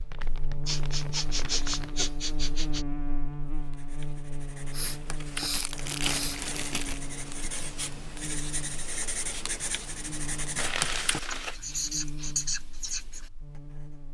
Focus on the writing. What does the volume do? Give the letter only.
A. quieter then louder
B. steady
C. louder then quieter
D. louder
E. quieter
D.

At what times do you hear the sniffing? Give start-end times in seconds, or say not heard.
0.7-2.9, 4.7-6.4, 11.7-12.4.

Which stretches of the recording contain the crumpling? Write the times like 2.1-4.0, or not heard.
0.1-2.1, 5.5-7.0, 10.6-11.6.